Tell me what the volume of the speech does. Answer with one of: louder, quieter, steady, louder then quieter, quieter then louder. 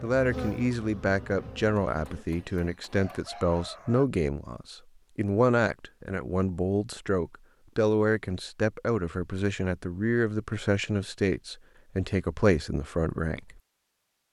steady.